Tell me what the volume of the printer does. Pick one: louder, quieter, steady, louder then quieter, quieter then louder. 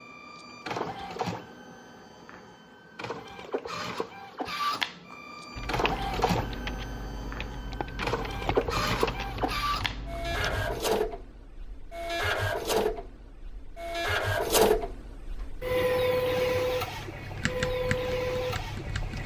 louder.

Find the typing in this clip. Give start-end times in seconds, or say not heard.
5.5-10.8, 15.3-19.2.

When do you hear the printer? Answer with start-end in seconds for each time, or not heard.
0.0-19.2.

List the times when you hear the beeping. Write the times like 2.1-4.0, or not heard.
not heard.